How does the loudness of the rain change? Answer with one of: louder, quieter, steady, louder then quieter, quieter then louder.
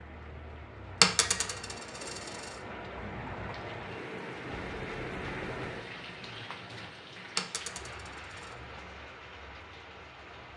louder then quieter.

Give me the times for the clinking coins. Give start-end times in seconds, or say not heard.
1.0-2.5, 7.3-8.5.